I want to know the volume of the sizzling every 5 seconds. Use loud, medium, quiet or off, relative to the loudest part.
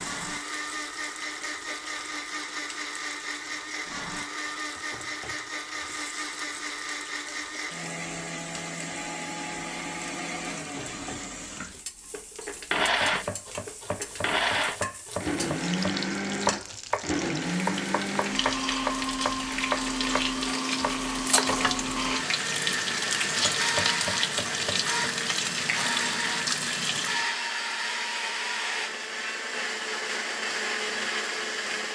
quiet, quiet, quiet, medium, loud, loud, off.